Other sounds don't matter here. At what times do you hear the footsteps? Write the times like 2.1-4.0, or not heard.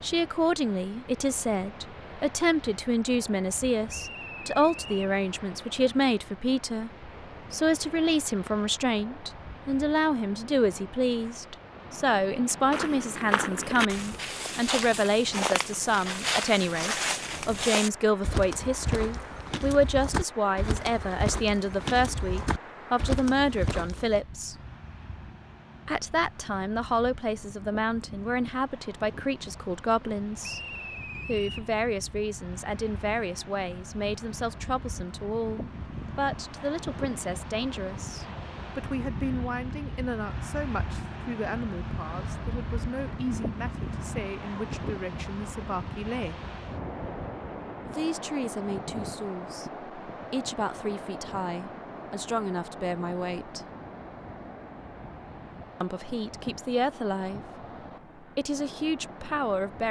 12.7-24.2.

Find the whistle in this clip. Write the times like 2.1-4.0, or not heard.
3.9-5.2, 30.4-31.7.